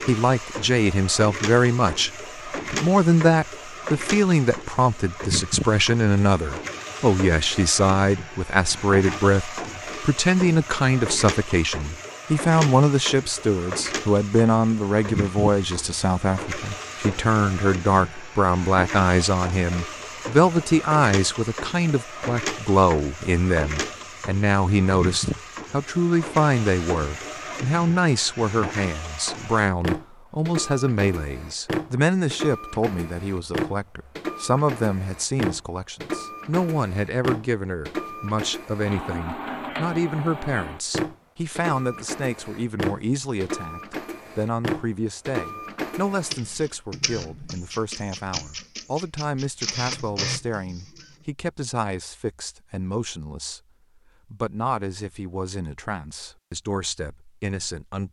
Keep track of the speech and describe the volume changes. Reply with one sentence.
The volume of the speech goes down.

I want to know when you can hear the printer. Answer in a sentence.
The printer can be heard from 0.0 to 51.1 s.